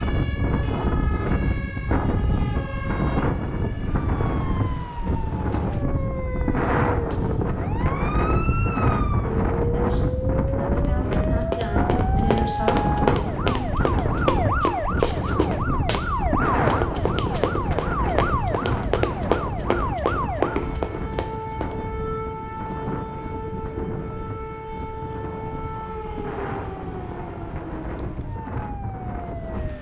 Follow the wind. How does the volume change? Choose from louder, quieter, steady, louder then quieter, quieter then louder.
quieter.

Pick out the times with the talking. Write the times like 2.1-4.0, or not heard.
8.9-13.7.